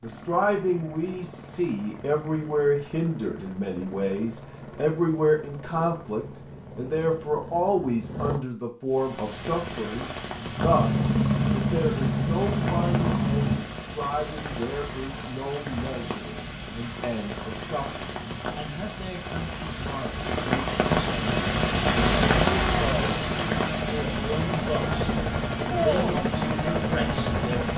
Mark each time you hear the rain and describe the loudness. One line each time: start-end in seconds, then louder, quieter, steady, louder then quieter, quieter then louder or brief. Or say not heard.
8.9-27.7 louder then quieter.